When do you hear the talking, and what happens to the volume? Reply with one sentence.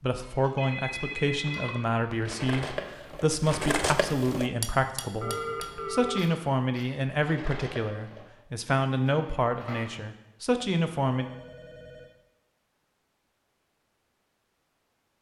The talking can be heard from 0.0 to 11.3 s, at a steady volume.